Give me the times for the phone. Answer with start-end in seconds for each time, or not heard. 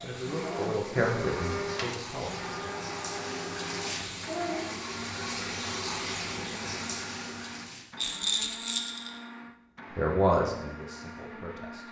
not heard.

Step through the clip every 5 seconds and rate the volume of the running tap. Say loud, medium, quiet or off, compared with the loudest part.
loud, loud, off.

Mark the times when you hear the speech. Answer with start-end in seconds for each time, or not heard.
0.0-2.6, 9.9-11.8.